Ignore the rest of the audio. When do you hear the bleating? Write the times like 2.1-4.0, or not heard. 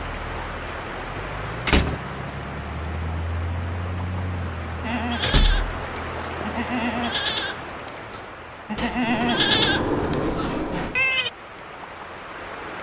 4.8-11.3.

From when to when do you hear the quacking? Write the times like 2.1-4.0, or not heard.
not heard.